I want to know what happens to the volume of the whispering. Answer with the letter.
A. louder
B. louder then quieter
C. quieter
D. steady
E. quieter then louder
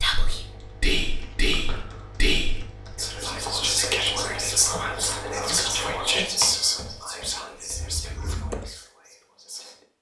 C.